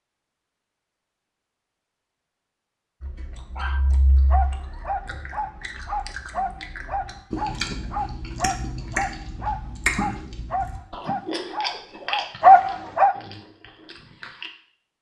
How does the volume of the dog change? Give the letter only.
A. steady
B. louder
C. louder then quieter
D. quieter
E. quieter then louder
B.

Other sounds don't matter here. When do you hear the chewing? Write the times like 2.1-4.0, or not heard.
3.0-14.5.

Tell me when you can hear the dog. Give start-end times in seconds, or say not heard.
3.5-13.1.